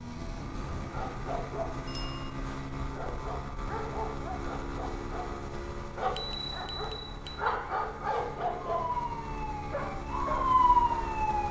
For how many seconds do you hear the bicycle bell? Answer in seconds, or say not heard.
2 s.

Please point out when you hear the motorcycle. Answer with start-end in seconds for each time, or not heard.
0.0-11.4.